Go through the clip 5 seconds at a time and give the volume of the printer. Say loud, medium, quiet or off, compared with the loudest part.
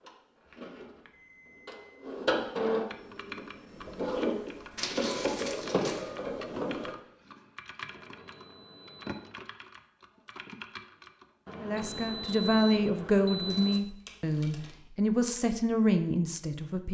loud, loud, off, off.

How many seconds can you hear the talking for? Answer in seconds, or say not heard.
5 s.